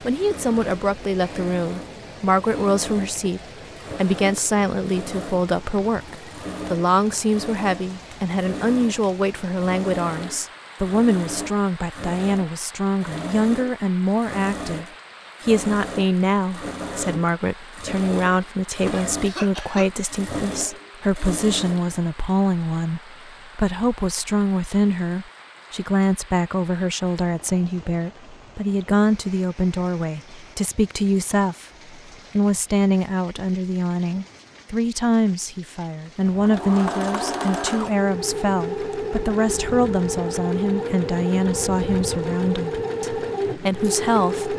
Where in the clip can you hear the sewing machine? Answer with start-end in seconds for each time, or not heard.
0.1-22.1, 36.2-44.5.